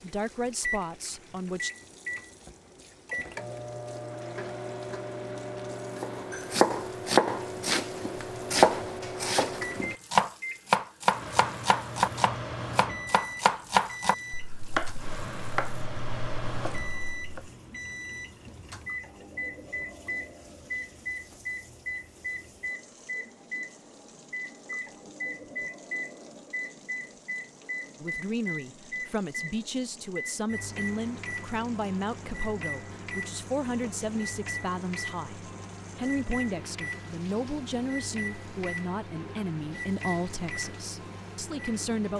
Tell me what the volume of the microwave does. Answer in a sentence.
The volume of the microwave stays about the same.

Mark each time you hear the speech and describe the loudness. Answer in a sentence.
You can hear the speech briefly from 0.0 to 1.7 s; and from 28.0 to 42.1 s, at a steady volume.